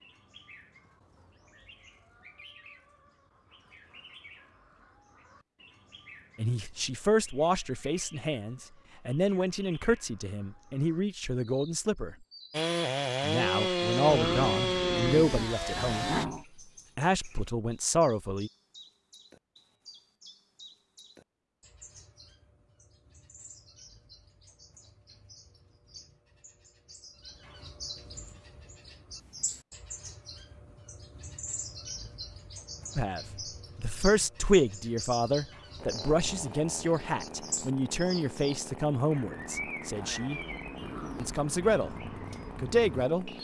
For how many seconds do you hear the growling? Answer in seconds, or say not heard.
3 s.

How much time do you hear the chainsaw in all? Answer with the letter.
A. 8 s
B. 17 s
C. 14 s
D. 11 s
D.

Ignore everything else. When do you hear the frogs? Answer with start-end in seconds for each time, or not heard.
not heard.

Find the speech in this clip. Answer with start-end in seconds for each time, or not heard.
6.3-12.2, 13.2-16.2, 16.9-18.5, 33.0-40.4, 41.1-42.0, 42.6-43.3.